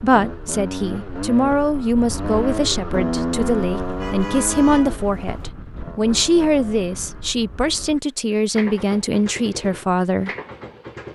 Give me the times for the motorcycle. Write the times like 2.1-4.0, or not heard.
0.0-11.1.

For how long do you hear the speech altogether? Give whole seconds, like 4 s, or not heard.
10 s.